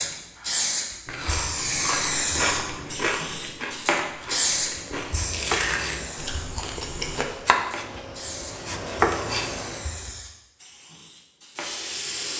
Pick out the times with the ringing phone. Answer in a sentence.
You can't hear the ringing phone here.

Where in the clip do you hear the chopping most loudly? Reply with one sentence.
The loudest moment of the chopping is at 9 seconds.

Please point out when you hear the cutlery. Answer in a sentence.
The cutlery can't be heard in this clip.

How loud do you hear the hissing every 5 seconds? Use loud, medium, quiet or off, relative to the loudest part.
loud, medium, medium.